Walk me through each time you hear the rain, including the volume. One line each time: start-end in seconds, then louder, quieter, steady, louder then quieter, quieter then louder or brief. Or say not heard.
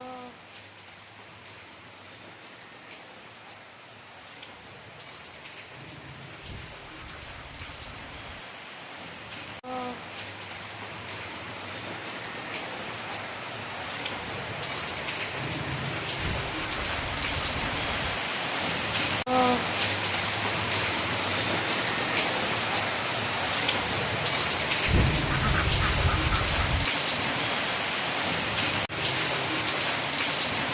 0.0-30.6 louder.